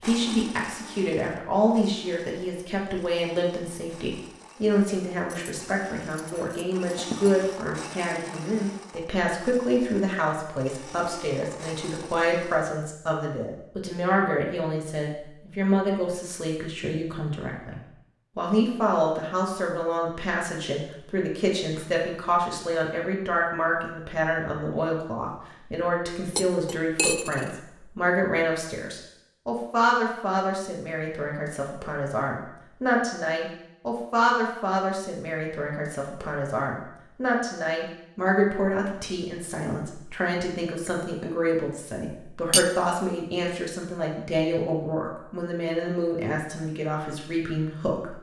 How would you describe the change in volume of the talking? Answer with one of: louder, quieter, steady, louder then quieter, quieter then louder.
steady.